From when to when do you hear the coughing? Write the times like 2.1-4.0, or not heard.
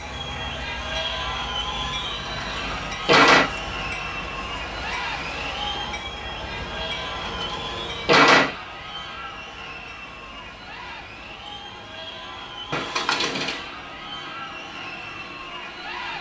not heard.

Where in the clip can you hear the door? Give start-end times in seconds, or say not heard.
2.2-3.5, 7.2-8.6, 12.7-13.6.